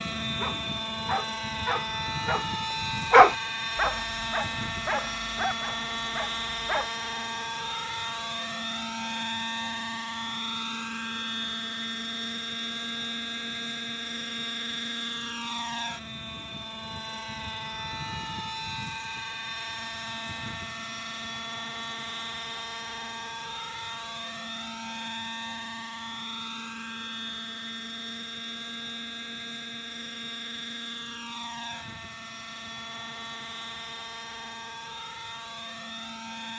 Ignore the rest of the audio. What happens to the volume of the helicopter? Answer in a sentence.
The volume of the helicopter goes down.